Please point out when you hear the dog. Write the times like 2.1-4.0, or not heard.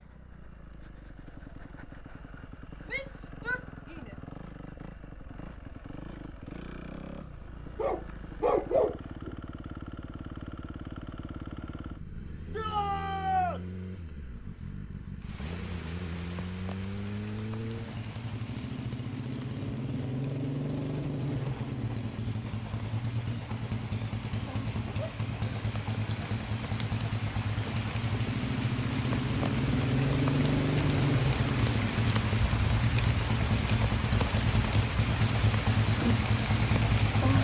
7.8-9.3.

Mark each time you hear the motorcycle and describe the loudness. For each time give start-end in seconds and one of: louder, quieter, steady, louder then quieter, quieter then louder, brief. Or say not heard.
0.0-37.3 louder.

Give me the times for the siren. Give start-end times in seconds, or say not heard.
not heard.